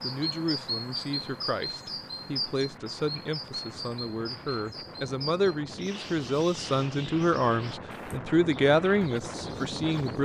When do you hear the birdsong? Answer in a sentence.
The birdsong can be heard from 0.0 to 10.2 s.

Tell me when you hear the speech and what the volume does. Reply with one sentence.
You can hear the speech from 0.0 to 10.2 s, getting louder.